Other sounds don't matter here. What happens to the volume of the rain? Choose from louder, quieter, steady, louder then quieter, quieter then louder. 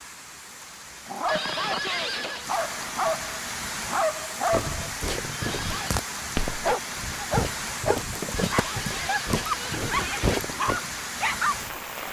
louder.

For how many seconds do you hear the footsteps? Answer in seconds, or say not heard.
6 s.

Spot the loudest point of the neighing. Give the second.
2 s.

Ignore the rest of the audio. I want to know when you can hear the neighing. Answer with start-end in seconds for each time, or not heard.
1.2-2.5, 5.4-6.0, 8.3-10.4.